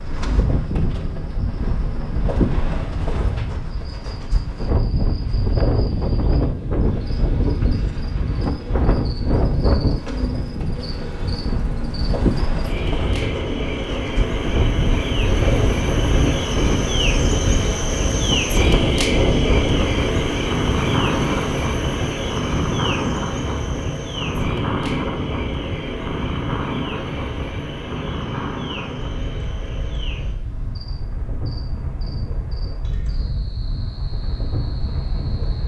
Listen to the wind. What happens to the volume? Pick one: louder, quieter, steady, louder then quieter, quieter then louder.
quieter.